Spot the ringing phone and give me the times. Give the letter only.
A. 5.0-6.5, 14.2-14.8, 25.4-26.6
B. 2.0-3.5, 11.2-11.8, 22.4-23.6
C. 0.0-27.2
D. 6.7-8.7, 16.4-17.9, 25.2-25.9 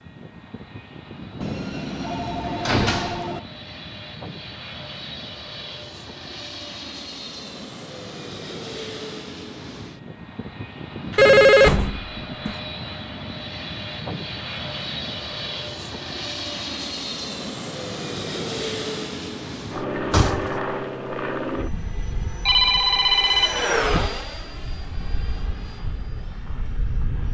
B.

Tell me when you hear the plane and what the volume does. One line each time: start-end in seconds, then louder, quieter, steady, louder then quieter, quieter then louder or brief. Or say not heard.
0.0-27.2 louder.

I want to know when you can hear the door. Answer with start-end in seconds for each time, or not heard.
1.4-3.4, 11.1-12.6, 19.9-20.6.